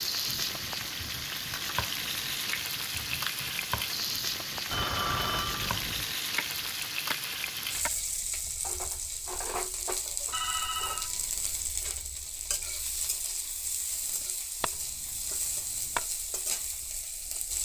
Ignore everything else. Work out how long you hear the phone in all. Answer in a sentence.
The phone can be heard for 3 seconds in total.